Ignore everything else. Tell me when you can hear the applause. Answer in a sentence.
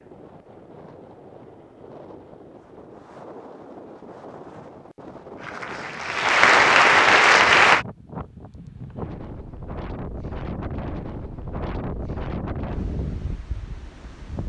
The applause can be heard from 5.3 to 7.8 s.